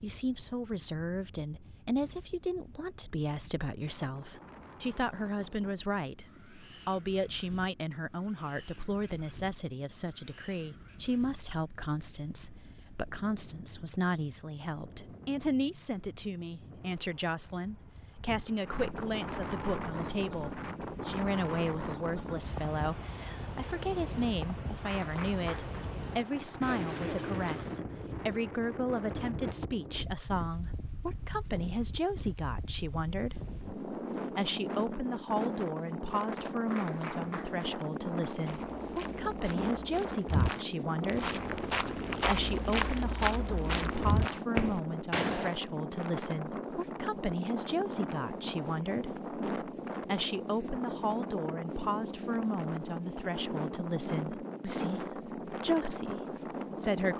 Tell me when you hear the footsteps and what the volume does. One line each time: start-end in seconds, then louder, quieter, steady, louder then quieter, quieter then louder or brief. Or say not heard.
38.3-45.6 louder.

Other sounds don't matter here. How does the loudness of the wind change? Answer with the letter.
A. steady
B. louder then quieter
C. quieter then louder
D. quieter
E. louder
E.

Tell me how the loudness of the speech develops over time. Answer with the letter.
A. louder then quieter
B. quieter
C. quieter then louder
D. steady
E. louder
D.